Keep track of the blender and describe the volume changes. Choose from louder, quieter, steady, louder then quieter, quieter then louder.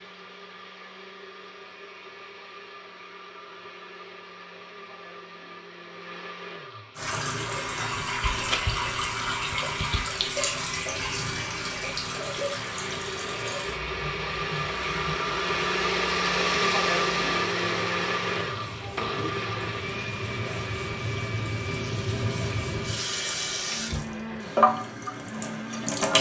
louder then quieter.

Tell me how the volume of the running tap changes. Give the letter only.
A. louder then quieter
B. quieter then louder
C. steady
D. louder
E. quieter
B.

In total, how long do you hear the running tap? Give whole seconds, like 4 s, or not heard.
19 s.